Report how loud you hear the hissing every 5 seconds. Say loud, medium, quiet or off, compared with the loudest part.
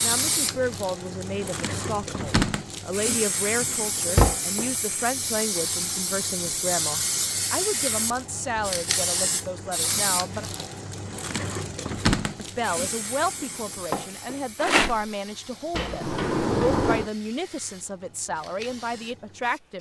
loud, loud, loud, quiet.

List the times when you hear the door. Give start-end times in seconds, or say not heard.
3.6-4.3, 15.7-17.1.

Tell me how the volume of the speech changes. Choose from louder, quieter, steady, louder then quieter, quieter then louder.
steady.